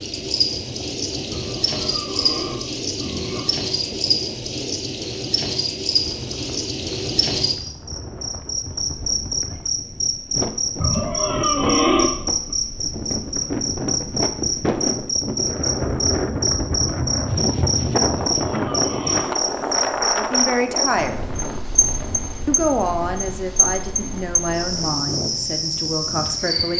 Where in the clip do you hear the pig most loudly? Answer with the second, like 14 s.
12 s.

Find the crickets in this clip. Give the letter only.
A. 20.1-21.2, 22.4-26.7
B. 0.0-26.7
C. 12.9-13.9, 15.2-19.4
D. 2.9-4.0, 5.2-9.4
B.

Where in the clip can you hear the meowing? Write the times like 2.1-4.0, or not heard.
not heard.